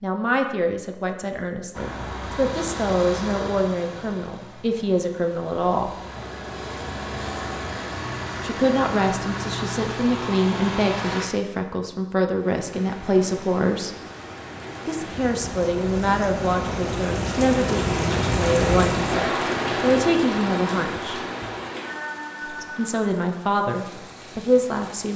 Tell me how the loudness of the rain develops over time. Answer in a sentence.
The loudness of the rain goes up, then down.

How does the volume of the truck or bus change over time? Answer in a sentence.
The volume of the truck or bus goes down, then up.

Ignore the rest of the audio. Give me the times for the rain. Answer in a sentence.
The rain can be heard from 12.2 to 25.1 s.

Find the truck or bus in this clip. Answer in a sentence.
You can hear the truck or bus from 1.7 to 11.2 s.